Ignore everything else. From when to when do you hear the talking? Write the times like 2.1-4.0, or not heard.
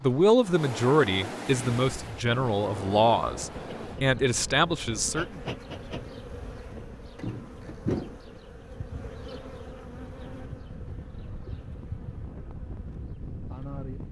0.0-5.4.